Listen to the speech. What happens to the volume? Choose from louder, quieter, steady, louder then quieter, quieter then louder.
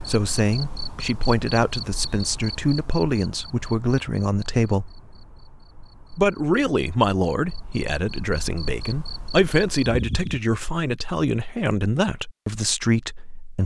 steady.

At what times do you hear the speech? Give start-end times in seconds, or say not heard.
0.0-4.9, 6.1-13.6.